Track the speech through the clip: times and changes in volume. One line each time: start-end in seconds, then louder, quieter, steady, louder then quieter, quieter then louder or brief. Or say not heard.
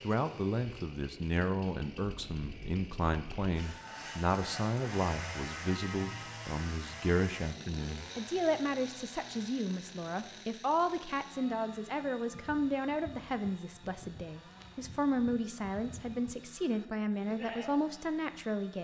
0.0-18.7 steady.